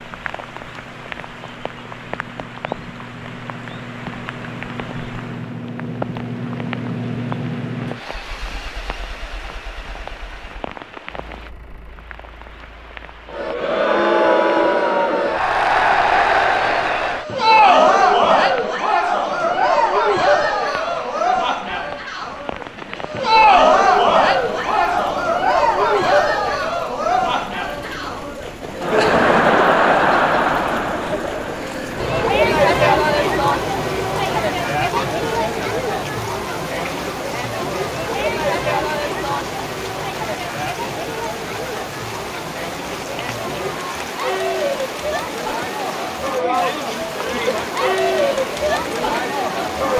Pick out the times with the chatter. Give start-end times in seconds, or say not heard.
13.3-49.9.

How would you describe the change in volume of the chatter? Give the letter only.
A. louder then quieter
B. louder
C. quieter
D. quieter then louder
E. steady
C.